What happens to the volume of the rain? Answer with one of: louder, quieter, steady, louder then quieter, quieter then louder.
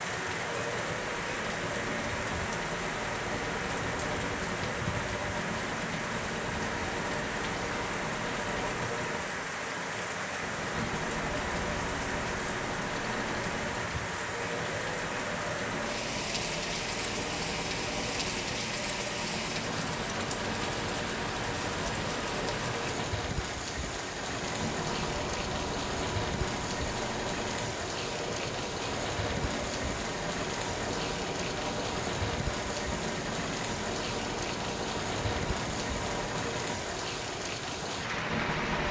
steady.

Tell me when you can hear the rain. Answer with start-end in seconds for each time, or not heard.
0.0-38.8.